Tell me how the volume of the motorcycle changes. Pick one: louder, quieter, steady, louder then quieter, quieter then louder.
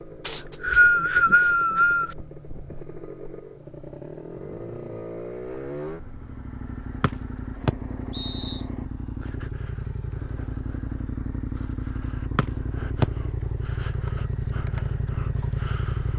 louder.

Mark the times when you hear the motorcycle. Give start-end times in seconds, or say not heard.
0.0-16.1.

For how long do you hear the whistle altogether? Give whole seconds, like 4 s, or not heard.
4 s.